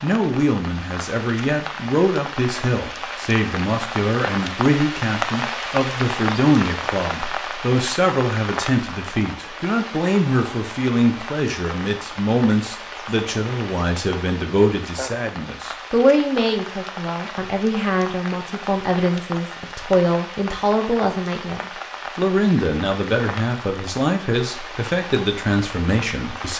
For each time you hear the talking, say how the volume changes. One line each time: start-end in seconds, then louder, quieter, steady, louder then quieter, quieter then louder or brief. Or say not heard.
0.0-26.5 steady.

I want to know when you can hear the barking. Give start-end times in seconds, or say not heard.
not heard.